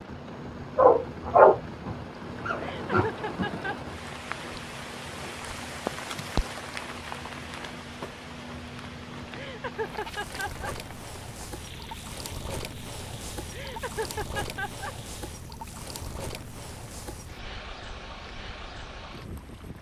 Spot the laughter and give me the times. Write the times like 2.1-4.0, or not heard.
2.5-3.8, 9.3-10.8, 13.5-14.9.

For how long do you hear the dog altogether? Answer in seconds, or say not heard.
3 s.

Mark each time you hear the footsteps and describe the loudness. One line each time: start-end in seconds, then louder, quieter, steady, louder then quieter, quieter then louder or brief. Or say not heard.
not heard.